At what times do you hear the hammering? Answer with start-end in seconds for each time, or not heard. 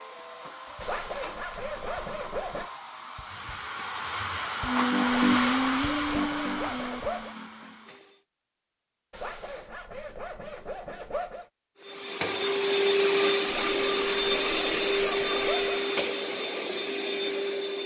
not heard.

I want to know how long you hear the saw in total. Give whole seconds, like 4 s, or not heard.
9 s.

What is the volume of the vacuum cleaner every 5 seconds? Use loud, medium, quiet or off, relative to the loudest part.
medium, loud, loud, loud.